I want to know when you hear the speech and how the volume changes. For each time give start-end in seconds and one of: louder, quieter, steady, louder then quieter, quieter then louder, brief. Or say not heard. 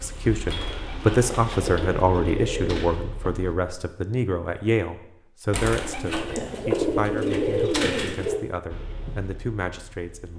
0.0-10.3 quieter.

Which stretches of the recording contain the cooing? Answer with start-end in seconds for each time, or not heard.
0.5-3.0, 5.5-8.4.